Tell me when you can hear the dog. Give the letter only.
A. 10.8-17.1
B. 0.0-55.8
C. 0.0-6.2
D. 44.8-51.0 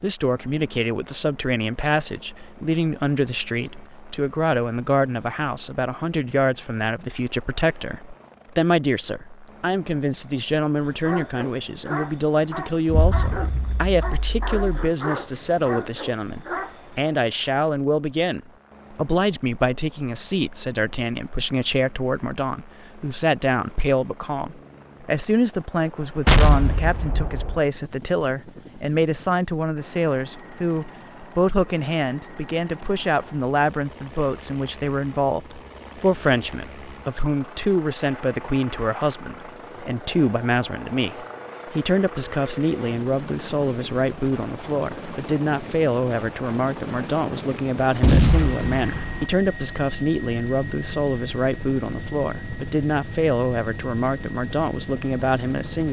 A.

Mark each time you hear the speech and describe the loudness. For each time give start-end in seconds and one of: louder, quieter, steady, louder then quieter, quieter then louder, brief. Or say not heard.
0.0-55.8 steady.